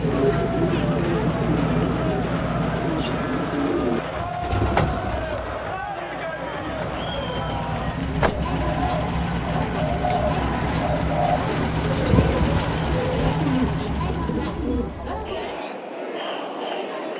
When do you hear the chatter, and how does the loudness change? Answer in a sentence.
The chatter can be heard from 0.0 to 17.1 s, at a steady volume.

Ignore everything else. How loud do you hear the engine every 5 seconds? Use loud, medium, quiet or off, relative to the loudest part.
loud, loud, loud, off.